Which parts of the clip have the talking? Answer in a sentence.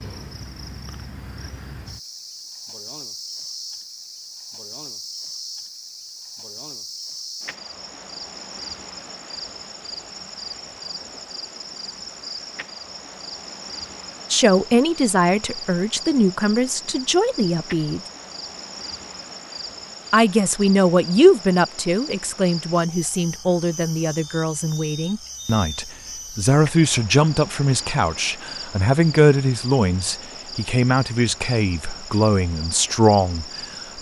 The talking can be heard from 14.3 to 18.0 s and from 20.1 to 33.9 s.